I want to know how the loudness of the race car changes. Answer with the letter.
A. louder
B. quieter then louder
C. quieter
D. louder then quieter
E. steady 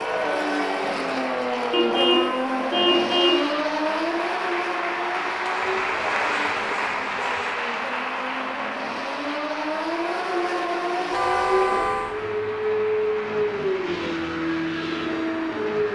B.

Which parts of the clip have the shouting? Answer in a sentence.
The shouting can't be heard in this clip.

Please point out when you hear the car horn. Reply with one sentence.
You can hear the car horn from 1.7 to 3.5 s, from 5.5 to 7.5 s and from 11.1 to 12.2 s.